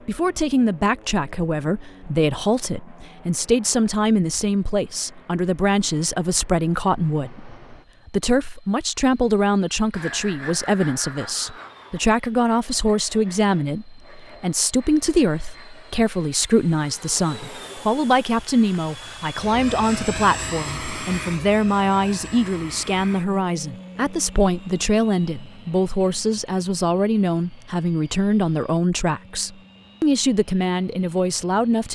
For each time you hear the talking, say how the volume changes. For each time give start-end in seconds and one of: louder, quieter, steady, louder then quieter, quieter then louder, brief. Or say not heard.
0.1-31.9 steady.